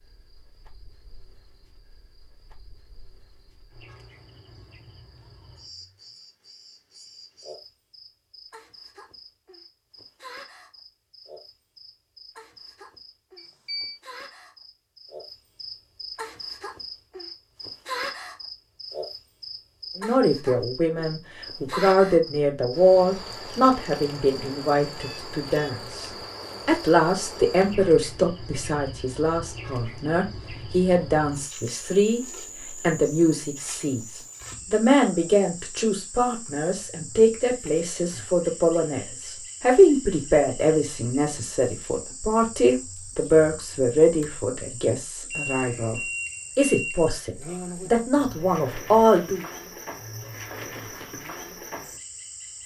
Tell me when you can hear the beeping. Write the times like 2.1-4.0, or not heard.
13.3-14.0, 25.0-25.8, 45.3-47.1.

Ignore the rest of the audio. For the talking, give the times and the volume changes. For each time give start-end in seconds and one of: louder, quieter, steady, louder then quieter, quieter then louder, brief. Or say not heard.
19.9-49.5 steady.